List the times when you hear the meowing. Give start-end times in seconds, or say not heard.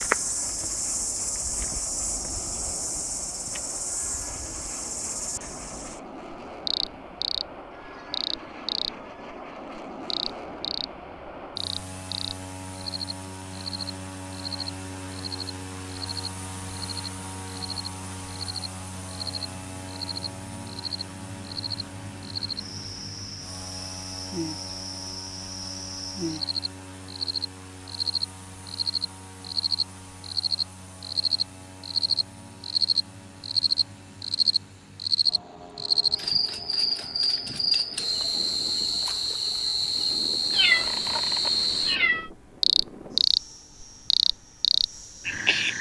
40.5-42.3.